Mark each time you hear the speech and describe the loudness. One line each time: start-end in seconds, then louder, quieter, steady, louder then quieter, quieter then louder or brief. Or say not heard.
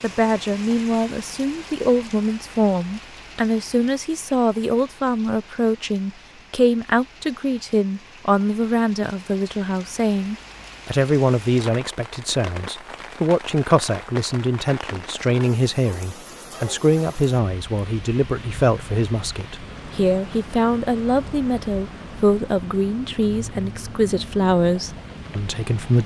0.0-26.0 steady.